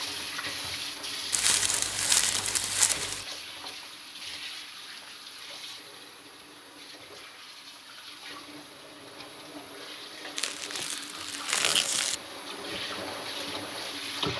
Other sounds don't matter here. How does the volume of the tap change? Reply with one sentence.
The loudness of the tap goes down, then up.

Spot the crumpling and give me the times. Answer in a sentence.
You can hear the crumpling from 1.3 to 3.2 s and from 10.3 to 12.2 s.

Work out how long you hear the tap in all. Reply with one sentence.
You can hear the tap for 14 seconds altogether.